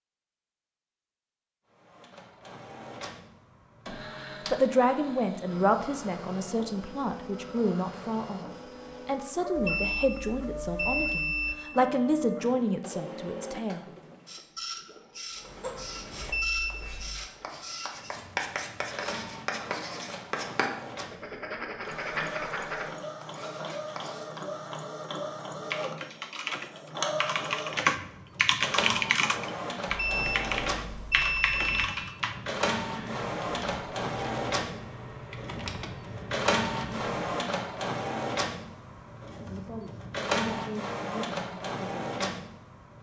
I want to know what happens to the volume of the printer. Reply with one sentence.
The loudness of the printer goes up.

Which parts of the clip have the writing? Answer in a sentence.
The writing can be heard from 15.3 to 24.4 s.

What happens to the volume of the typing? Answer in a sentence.
The volume of the typing goes down.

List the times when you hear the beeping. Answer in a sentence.
You can hear the beeping from 9.6 to 11.6 s, from 16.2 to 17.2 s and from 29.9 to 31.9 s.